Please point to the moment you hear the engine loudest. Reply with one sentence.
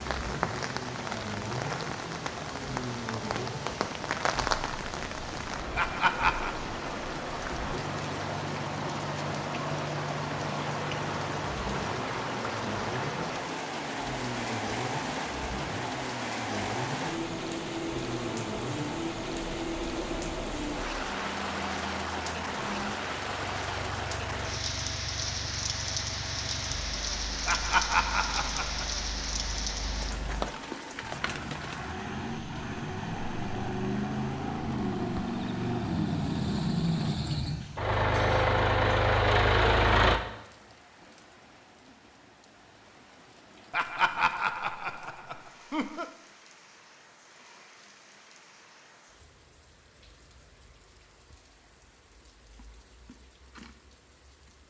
The loudest moment of the engine is at 40 seconds.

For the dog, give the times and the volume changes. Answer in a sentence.
You can't hear the dog here.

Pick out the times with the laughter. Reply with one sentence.
You can hear the laughter from 5.8 to 6.5 s, from 27.4 to 28.9 s and from 43.7 to 46.0 s.